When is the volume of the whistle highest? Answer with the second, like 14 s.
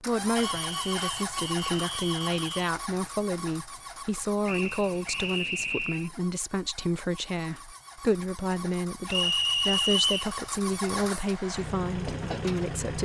10 s.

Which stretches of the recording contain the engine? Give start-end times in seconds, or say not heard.
0.0-12.9.